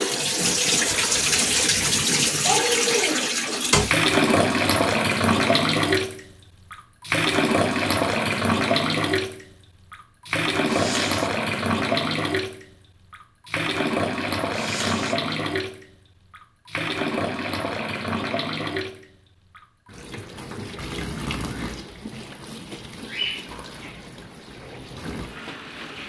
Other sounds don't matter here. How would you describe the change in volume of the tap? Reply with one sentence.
The volume of the tap goes down.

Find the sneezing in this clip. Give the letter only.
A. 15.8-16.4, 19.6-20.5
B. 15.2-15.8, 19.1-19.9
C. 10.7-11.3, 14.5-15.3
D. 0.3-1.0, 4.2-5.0
C.